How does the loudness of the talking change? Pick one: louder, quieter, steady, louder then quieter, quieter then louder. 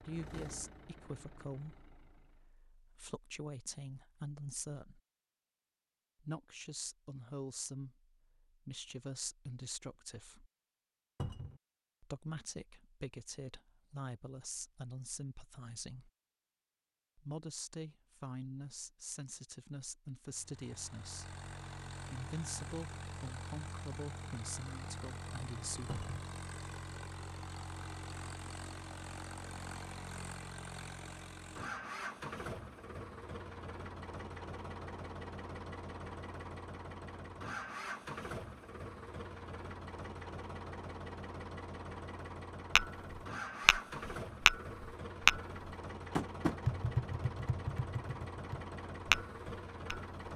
steady.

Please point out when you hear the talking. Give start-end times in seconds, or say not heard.
0.0-5.0, 6.2-10.5, 12.0-16.1, 17.1-21.4, 22.1-26.0.